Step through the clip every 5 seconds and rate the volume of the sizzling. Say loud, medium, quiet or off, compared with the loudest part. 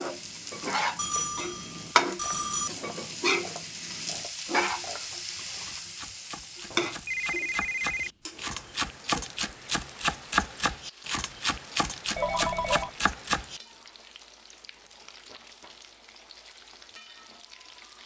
loud, medium, quiet, quiet.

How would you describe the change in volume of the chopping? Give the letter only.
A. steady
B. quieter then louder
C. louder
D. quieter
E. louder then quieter
C.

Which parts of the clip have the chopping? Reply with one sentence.
The chopping can be heard from 2.1 to 13.6 s.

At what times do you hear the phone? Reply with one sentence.
You can hear the phone from 0.9 to 2.7 s, from 6.7 to 8.1 s and from 12.2 to 12.9 s.